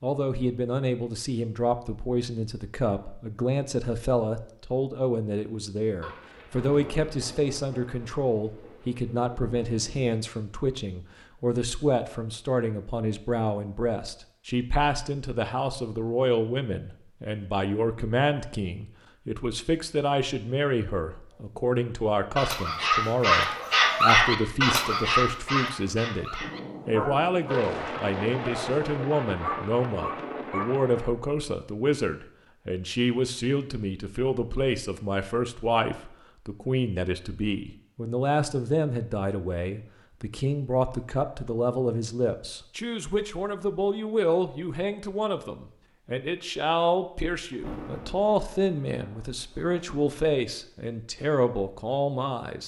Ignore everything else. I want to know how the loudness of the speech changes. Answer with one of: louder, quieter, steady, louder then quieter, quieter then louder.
steady.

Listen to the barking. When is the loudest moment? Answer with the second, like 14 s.
24 s.